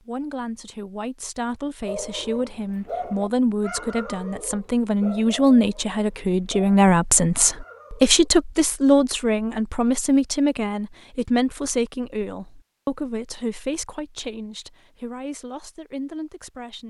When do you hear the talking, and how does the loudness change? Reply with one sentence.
You can hear the talking from 0.1 to 16.8 s, getting louder then quieter.